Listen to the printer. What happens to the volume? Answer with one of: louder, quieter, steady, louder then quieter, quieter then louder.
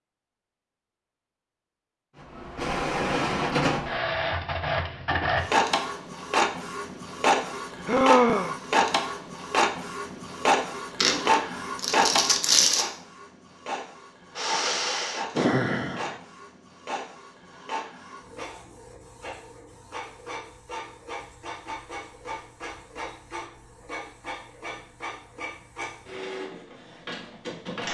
quieter.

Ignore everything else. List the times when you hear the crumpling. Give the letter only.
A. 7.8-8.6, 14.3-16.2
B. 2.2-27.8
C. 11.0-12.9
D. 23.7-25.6
C.